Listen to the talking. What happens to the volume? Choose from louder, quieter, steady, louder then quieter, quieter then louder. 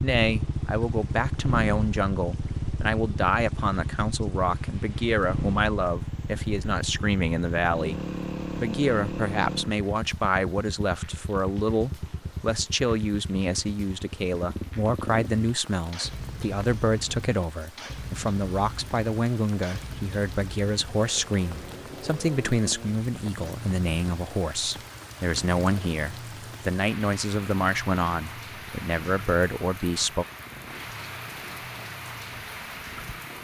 steady.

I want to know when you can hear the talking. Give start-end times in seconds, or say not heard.
0.0-30.2.